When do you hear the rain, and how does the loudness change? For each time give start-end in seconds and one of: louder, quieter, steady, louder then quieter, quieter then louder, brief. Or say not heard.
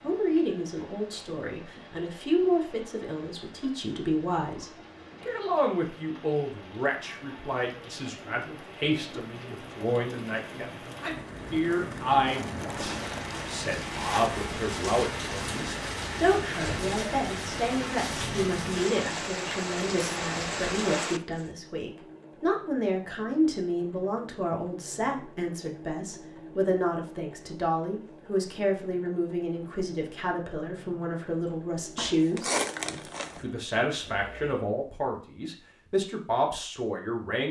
0.0-21.5 louder.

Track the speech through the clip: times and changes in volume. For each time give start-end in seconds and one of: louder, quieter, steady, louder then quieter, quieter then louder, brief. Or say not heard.
0.0-37.4 steady.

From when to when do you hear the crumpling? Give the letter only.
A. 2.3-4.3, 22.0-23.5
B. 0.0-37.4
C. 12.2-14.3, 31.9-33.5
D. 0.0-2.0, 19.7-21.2
C.